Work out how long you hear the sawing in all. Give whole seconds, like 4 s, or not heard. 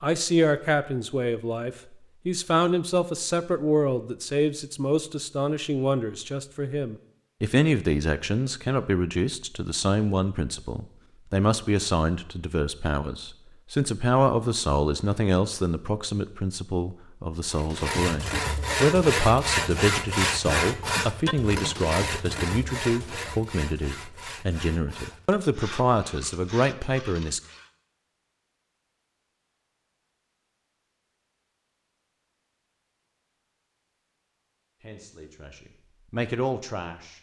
10 s.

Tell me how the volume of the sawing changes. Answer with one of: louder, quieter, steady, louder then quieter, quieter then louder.
quieter.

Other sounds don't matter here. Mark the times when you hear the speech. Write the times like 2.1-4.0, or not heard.
0.0-27.4, 34.8-37.1.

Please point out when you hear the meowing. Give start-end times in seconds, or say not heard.
not heard.